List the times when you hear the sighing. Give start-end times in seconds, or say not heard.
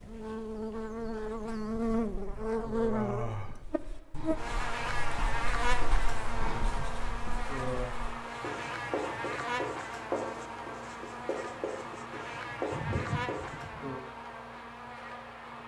1.5-3.6, 6.3-8.0, 12.7-14.0.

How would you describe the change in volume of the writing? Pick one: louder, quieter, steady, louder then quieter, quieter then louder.
louder.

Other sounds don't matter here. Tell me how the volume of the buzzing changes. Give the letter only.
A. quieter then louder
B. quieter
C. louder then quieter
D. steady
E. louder
B.